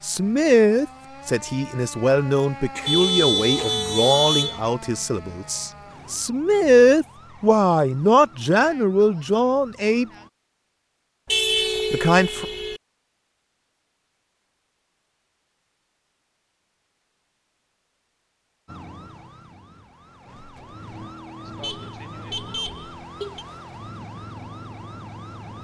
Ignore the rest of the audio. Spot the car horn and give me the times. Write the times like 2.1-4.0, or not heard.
2.8-4.6, 11.2-12.8, 21.6-23.4.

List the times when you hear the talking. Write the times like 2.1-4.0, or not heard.
0.0-10.1, 11.9-12.4.